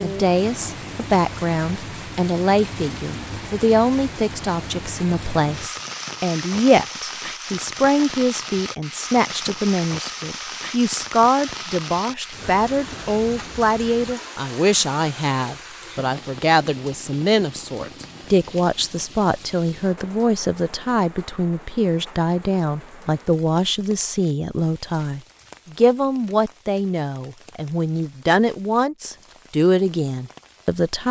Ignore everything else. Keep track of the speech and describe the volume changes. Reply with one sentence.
The loudness of the speech stays about the same.